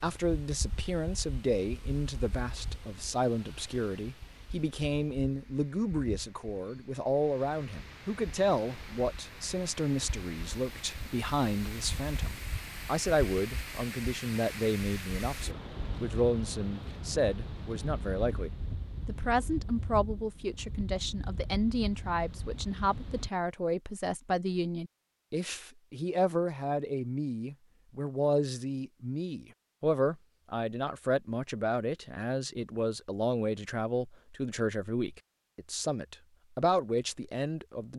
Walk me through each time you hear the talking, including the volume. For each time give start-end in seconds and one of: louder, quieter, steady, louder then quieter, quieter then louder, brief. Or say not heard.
0.0-37.9 steady.